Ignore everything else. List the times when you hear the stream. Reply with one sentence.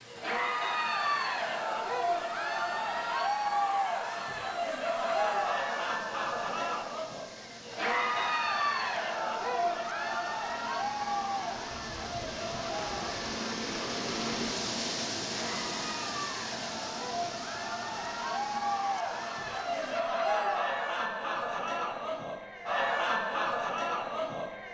You can hear the stream from 0.0 to 20.0 s.